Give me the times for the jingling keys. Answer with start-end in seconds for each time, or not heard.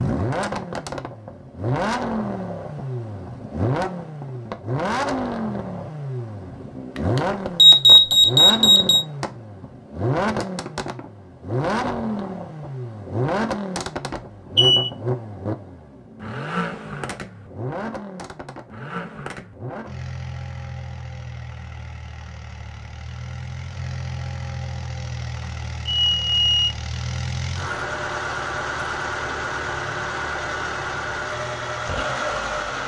not heard.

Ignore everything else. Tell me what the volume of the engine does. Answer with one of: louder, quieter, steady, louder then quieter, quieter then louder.
quieter then louder.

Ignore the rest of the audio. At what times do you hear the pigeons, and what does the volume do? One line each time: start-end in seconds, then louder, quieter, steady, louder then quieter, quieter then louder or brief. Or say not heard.
not heard.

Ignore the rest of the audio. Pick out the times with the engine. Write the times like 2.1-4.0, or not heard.
0.0-32.8.